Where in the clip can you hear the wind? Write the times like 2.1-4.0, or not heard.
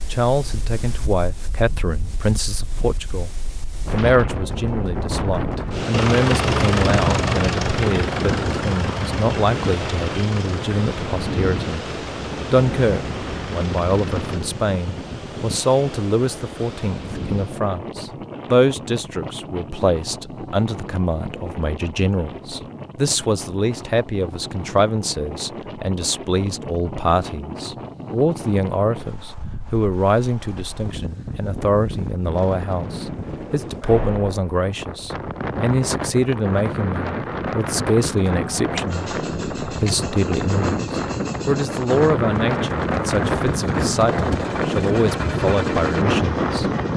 0.0-46.9.